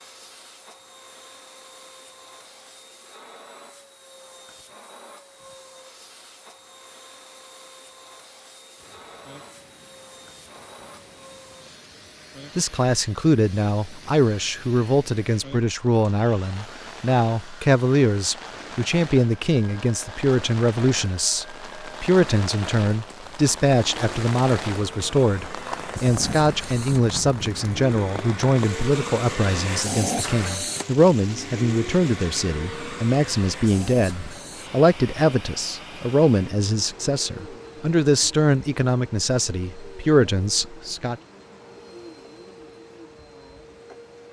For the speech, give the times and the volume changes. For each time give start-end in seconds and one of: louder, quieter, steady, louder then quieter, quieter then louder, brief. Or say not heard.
12.6-41.1 steady.